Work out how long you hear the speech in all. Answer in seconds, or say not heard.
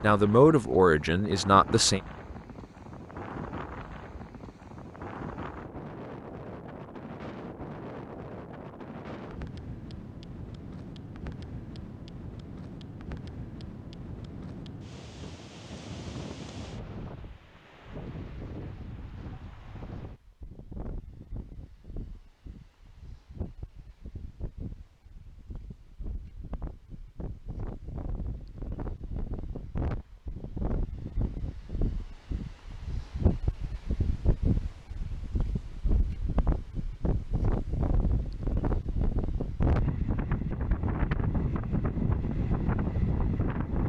2 s.